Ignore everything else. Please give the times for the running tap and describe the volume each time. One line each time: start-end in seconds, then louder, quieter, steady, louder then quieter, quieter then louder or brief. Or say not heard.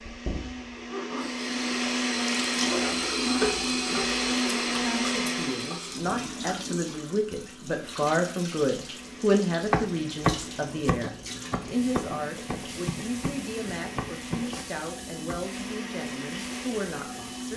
0.0-17.5 quieter.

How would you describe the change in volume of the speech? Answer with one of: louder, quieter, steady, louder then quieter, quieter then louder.
louder then quieter.